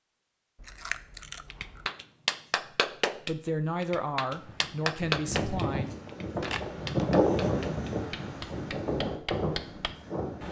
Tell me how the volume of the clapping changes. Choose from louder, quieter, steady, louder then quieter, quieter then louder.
quieter.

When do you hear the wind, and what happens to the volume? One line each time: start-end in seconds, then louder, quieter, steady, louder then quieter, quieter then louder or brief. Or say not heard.
4.3-10.4 louder then quieter.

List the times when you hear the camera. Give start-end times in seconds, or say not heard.
0.6-1.9, 6.4-7.1.